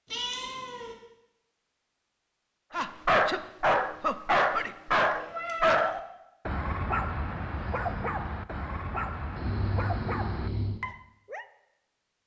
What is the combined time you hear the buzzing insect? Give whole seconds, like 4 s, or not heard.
not heard.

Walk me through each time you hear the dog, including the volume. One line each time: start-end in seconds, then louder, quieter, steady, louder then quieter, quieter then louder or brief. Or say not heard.
2.7-11.4 quieter.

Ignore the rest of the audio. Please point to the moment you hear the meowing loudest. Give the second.
6 s.